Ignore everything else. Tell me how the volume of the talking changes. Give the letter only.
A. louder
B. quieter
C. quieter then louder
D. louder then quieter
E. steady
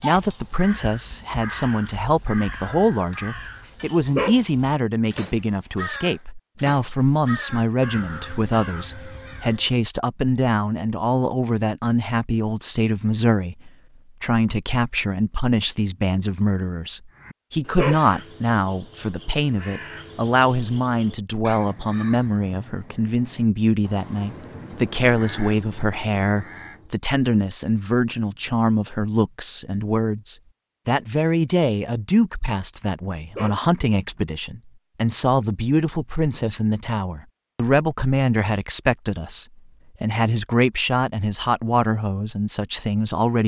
E.